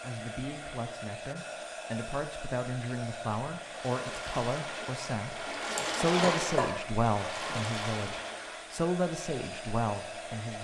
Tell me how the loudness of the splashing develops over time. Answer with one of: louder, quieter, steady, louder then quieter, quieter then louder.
louder then quieter.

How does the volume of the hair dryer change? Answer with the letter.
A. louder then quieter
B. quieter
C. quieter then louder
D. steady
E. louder
D.